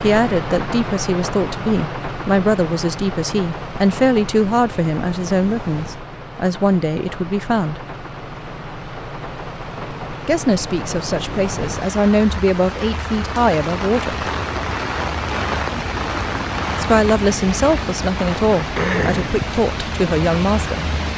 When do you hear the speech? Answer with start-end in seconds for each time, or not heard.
0.0-7.8, 10.2-14.3, 16.8-20.9.